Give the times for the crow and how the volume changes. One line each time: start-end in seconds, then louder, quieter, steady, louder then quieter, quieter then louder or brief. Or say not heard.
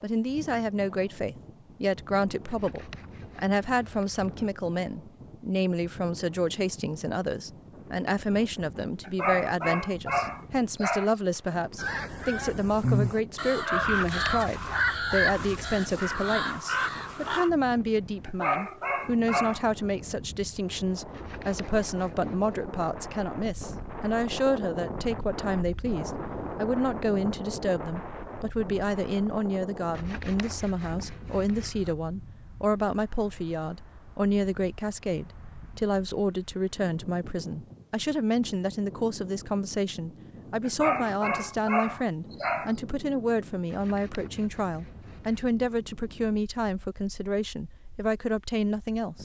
11.8-17.5 steady.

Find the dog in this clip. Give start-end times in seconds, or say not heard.
9.0-11.2, 18.2-19.6, 40.6-42.8.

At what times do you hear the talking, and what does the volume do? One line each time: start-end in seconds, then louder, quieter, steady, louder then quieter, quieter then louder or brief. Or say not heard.
0.0-49.2 steady.